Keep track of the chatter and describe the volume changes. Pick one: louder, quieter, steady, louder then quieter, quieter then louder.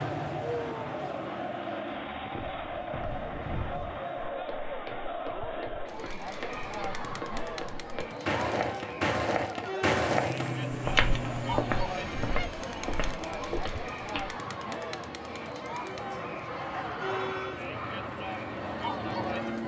steady.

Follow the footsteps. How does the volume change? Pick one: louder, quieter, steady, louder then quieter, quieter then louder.
louder then quieter.